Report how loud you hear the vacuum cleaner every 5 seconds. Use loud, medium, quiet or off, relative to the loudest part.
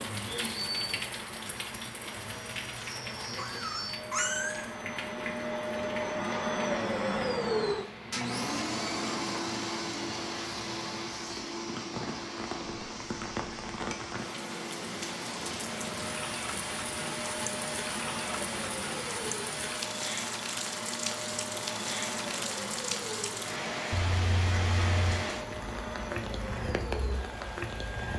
medium, loud, medium, medium, medium, medium.